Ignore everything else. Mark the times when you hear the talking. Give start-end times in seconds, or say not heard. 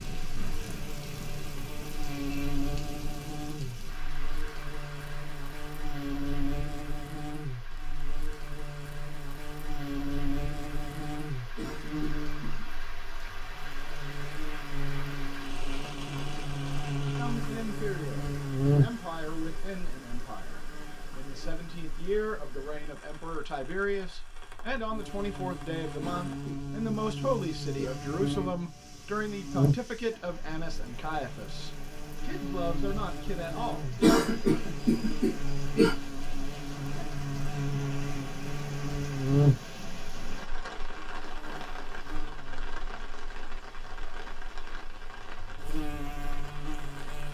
17.1-34.0.